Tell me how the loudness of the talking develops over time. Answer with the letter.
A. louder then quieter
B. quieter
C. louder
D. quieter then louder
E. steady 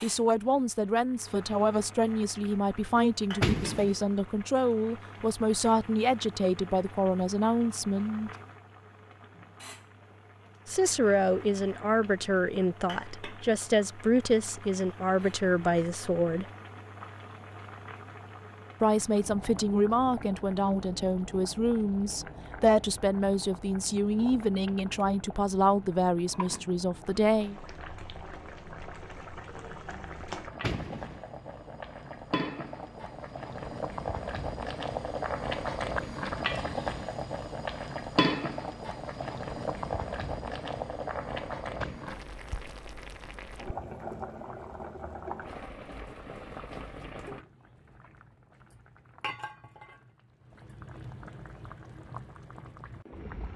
E.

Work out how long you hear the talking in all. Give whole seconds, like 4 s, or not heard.
23 s.